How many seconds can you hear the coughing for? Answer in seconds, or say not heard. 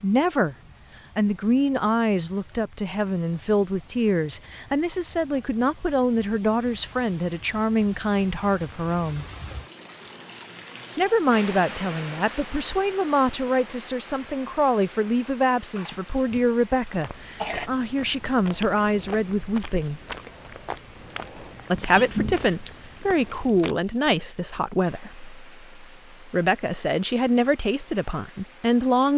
2 s.